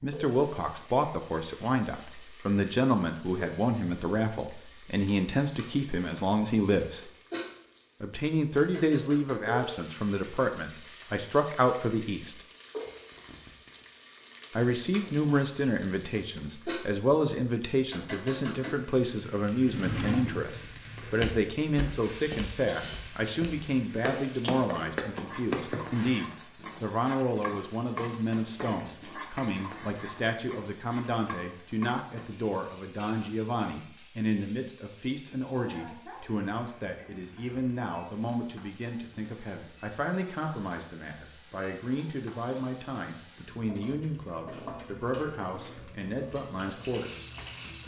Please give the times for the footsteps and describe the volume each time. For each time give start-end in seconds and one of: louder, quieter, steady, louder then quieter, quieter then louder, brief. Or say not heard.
20.6-26.1 quieter then louder.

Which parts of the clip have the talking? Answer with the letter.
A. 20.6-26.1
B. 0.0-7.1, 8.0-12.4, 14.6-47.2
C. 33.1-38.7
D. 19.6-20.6
B.